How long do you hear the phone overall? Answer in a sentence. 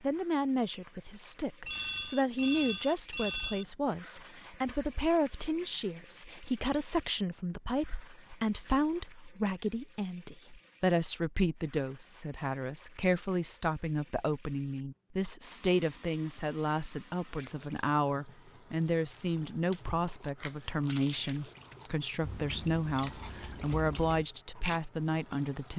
You can hear the phone for 2 seconds altogether.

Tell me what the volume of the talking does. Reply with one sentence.
The volume of the talking stays about the same.